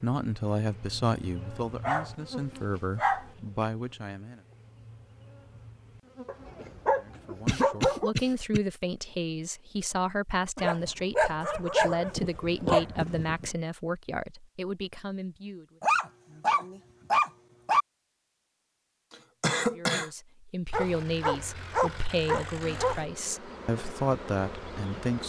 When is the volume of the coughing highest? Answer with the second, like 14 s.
20 s.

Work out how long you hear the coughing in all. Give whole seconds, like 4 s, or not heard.
2 s.